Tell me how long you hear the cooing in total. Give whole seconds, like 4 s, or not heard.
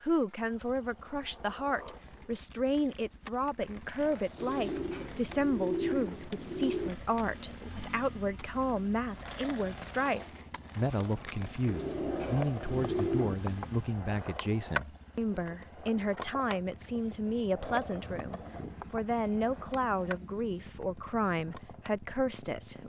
4 s.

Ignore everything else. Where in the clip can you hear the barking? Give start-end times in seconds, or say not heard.
not heard.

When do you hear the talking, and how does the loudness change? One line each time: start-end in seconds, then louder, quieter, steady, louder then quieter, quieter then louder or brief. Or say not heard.
0.0-22.8 steady.